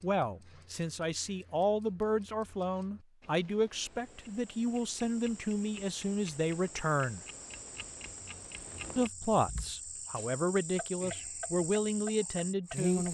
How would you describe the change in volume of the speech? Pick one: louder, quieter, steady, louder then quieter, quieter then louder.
steady.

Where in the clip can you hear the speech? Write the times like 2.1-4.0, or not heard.
0.0-7.2, 8.9-13.0.